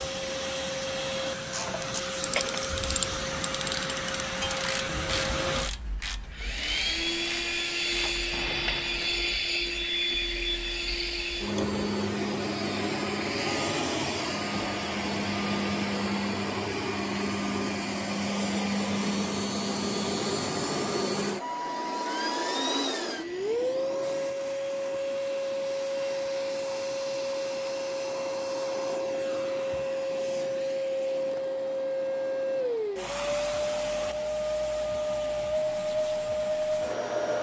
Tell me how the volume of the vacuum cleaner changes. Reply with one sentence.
The volume of the vacuum cleaner stays about the same.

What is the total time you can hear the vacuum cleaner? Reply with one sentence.
You can hear the vacuum cleaner for 37 seconds altogether.